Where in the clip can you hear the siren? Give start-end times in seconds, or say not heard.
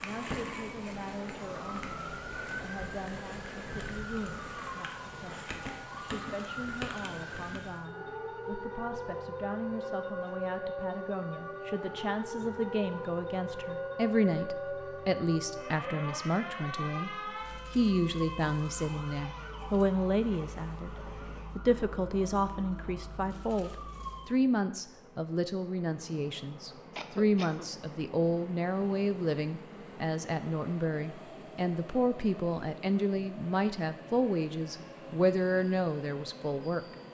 0.0-24.4.